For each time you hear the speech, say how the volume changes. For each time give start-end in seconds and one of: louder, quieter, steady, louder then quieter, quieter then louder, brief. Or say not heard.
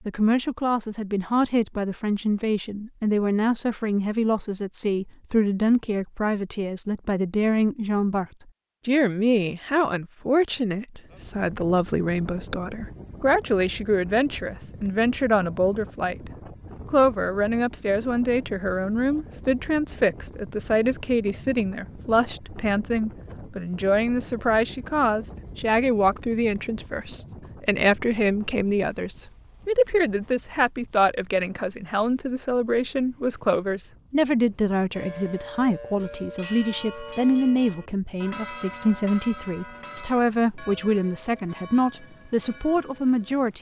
0.1-8.2 steady
8.8-43.5 steady.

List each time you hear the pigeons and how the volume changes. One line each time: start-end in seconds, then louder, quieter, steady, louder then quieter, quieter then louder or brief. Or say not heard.
not heard.